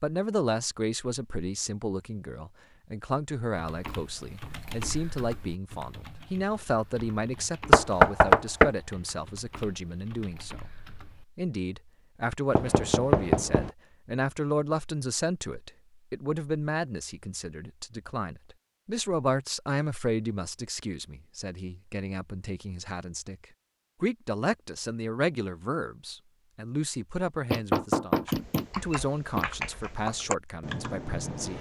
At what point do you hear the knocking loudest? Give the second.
8 s.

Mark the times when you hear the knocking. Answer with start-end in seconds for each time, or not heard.
7.7-8.7, 12.6-13.7, 27.5-29.4.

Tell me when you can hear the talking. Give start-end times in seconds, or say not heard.
0.0-31.5.